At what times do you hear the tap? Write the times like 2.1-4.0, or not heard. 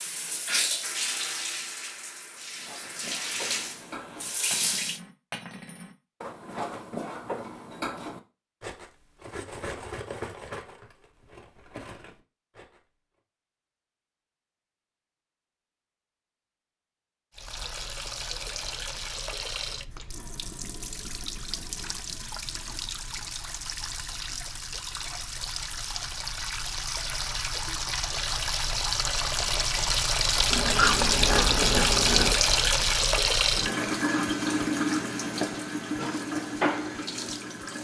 0.0-5.0, 17.4-37.8.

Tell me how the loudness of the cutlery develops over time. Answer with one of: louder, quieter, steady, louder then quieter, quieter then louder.
louder then quieter.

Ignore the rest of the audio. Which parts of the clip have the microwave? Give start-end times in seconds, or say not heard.
not heard.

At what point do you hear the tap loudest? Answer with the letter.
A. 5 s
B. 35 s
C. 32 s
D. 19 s
C.